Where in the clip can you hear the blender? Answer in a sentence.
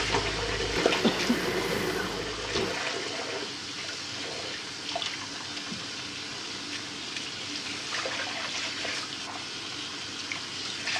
You can hear the blender from 0.0 to 2.9 s.